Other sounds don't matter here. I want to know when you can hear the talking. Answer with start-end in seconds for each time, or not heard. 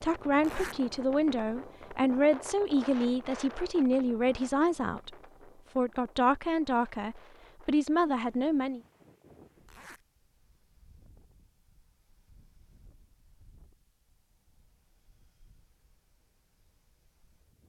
0.0-5.2, 5.8-8.8.